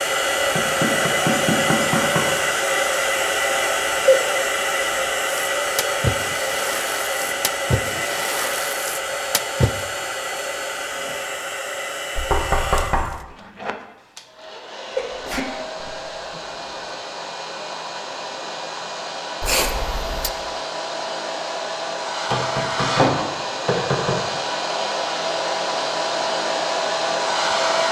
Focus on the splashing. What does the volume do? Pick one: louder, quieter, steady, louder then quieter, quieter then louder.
louder then quieter.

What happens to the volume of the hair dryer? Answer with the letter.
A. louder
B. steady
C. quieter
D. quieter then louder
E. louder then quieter
D.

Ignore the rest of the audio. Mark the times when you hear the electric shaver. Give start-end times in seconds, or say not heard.
not heard.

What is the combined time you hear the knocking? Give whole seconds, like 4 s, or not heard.
5 s.